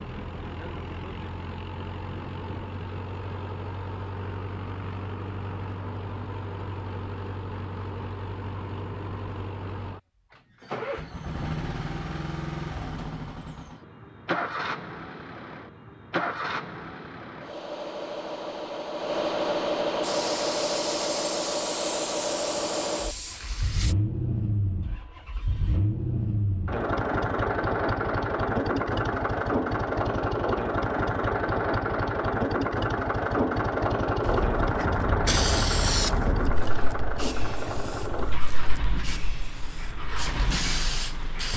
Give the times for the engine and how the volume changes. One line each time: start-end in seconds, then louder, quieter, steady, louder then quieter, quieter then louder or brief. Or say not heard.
0.0-41.5 louder.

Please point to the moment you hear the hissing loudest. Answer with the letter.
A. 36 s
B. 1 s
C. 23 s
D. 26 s
A.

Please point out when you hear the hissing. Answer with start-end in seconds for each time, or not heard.
20.0-23.9, 34.2-41.5.